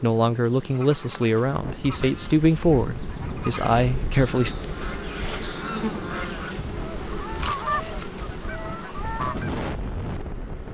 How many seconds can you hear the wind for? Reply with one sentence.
You can hear the wind for 9 seconds altogether.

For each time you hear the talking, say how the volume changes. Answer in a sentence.
You can hear the talking from 0.0 to 4.5 s, at a steady volume.